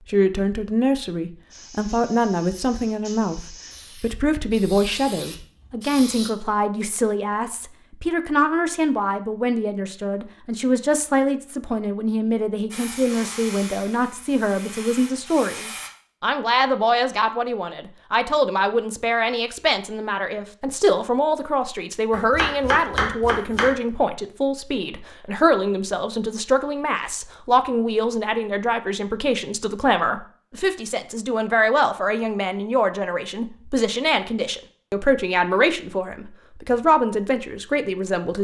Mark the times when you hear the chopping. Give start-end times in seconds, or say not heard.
22.1-23.8.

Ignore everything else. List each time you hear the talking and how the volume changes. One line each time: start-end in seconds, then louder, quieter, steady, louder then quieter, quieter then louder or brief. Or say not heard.
0.1-38.3 steady.